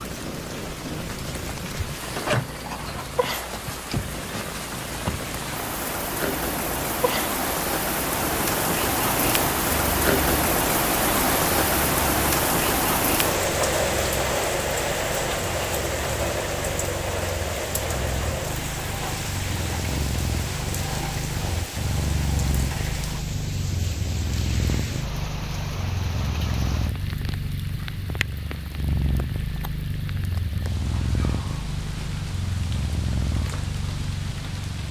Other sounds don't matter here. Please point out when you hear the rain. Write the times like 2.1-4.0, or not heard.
0.0-34.8.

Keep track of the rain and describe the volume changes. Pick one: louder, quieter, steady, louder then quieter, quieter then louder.
louder then quieter.